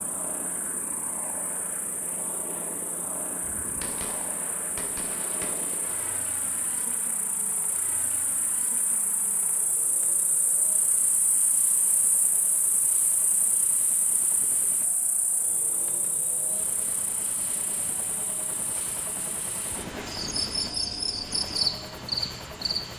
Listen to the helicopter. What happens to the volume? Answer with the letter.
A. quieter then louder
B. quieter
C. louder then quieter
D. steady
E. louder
A.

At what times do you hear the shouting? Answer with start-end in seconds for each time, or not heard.
not heard.